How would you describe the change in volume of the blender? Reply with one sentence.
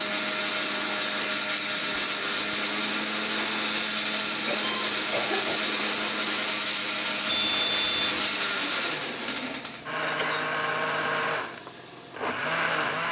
The volume of the blender stays about the same.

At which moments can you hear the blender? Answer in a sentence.
You can hear the blender from 0.0 to 13.0 s.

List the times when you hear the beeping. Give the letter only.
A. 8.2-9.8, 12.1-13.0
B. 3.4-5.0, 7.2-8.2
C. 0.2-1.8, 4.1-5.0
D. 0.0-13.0
B.